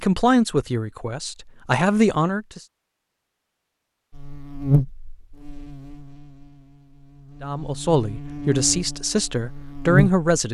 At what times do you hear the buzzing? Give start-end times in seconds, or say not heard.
4.1-10.2.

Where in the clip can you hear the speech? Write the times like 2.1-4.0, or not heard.
0.0-2.6, 7.4-10.4.